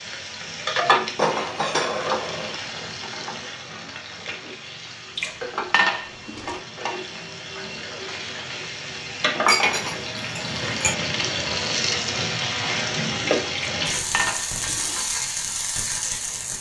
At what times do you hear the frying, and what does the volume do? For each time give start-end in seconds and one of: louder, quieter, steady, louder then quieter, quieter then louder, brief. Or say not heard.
0.0-16.5 quieter then louder.